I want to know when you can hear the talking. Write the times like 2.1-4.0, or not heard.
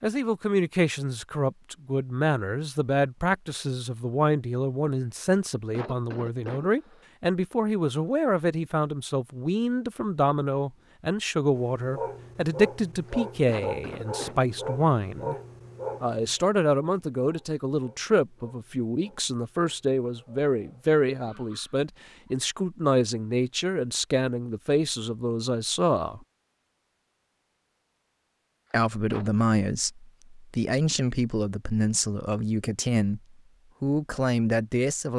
0.0-15.3, 16.0-26.2, 28.7-33.2, 33.8-35.1.